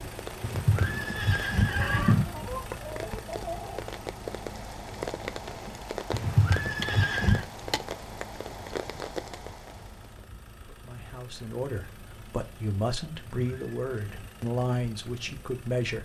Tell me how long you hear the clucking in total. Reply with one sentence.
The clucking can be heard for 2 seconds in total.